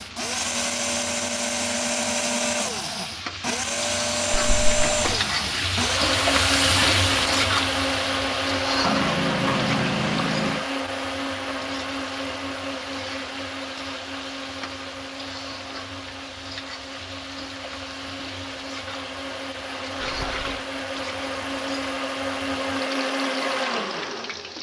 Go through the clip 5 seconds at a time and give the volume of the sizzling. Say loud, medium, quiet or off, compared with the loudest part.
medium, loud, quiet, quiet, quiet.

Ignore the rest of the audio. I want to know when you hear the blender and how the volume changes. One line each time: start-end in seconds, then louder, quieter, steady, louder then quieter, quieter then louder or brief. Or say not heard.
0.0-24.5 quieter then louder.